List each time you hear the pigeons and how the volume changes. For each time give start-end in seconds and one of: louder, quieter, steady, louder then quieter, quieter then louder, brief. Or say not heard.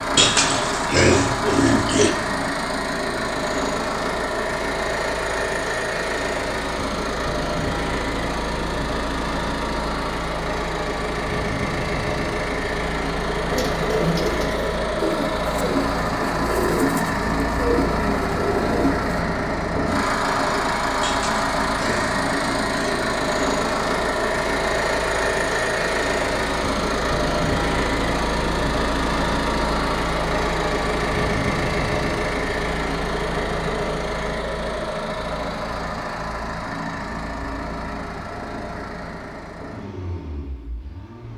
13.5-19.2 steady.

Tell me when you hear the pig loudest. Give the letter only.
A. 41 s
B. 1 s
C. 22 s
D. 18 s
B.